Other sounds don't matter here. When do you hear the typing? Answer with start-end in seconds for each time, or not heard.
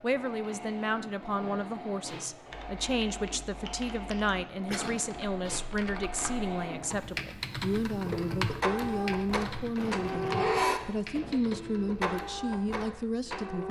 2.5-12.1.